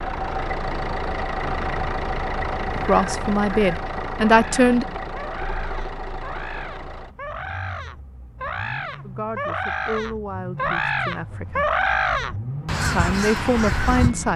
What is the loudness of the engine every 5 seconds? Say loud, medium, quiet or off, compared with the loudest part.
loud, medium, medium.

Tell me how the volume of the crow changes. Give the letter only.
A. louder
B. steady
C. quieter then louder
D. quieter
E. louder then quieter
A.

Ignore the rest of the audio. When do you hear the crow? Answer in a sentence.
The crow can be heard from 2.6 to 14.2 s.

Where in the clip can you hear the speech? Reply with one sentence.
The speech can be heard from 2.9 to 4.8 s, from 9.1 to 11.7 s and from 12.9 to 14.3 s.